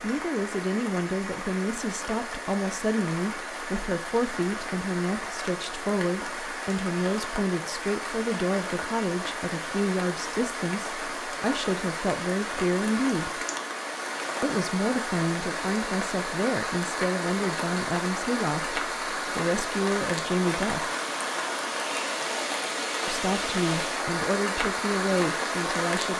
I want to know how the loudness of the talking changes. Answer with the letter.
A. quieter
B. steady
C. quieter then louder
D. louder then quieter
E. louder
B.